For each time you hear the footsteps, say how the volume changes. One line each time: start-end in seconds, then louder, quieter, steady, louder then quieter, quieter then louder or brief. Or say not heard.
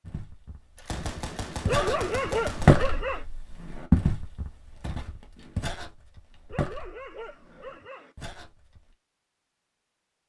0.0-8.9 louder then quieter.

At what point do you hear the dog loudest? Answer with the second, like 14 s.
2 s.